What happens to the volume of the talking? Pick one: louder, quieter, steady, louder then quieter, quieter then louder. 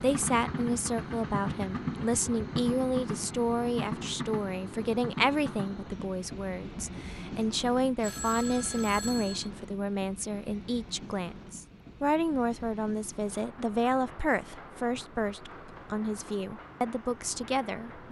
steady.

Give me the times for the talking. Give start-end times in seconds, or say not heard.
0.0-18.0.